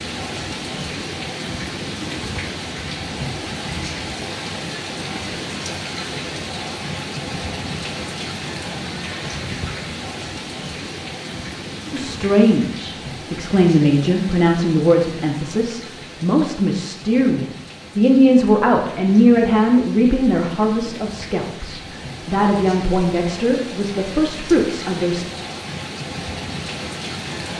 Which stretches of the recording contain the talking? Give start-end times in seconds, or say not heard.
11.9-25.2.